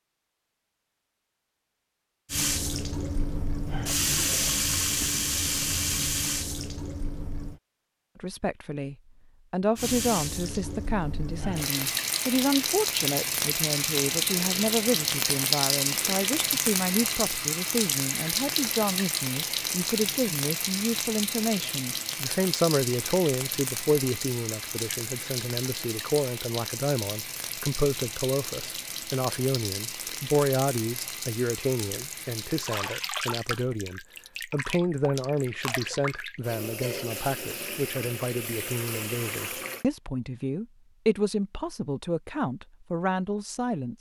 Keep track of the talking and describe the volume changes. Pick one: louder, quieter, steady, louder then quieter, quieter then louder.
steady.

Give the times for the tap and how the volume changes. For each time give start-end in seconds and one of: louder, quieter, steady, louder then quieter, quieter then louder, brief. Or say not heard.
2.3-7.6 louder then quieter
9.8-39.9 quieter.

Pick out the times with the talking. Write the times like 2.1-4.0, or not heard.
8.2-43.9.